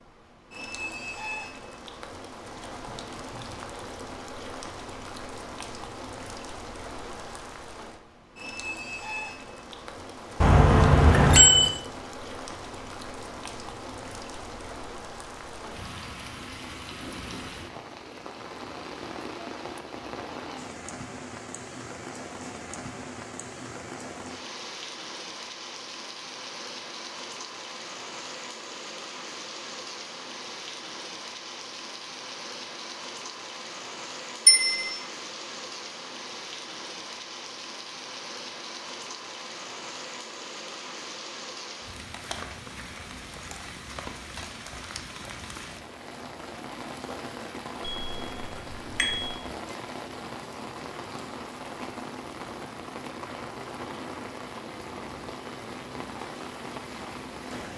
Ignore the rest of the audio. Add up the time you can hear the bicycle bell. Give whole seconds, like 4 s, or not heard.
3 s.